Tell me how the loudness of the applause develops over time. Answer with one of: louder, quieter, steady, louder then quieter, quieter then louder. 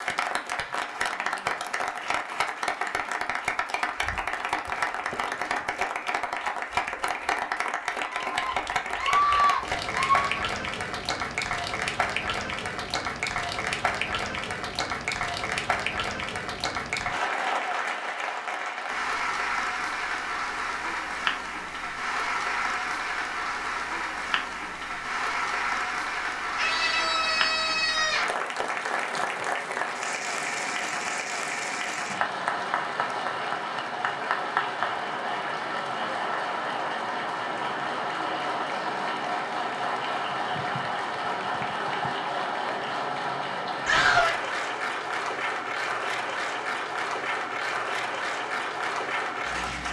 steady.